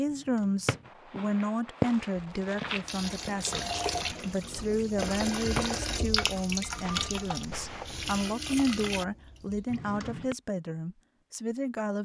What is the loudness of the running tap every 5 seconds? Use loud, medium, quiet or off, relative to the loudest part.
loud, loud, off.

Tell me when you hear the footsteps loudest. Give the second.
2 s.